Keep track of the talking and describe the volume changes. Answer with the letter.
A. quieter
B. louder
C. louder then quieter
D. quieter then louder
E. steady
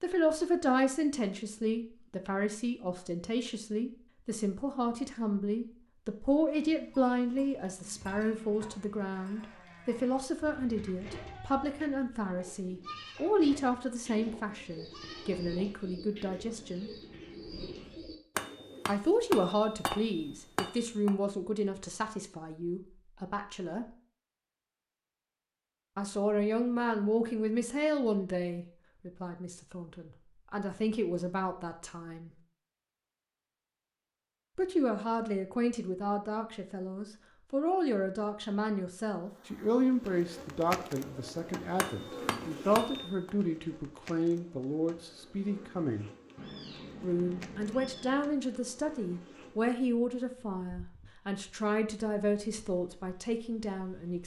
E.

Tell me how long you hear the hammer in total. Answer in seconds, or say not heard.
4 s.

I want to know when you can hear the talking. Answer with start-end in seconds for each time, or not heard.
0.0-16.9, 18.9-23.9, 25.9-32.3, 34.5-46.0, 47.0-54.2.